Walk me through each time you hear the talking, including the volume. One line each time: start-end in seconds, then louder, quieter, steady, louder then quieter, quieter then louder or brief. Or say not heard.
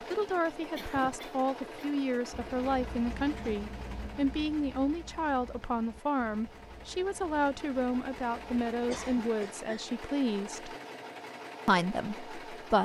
0.1-10.8 steady
11.7-12.8 brief.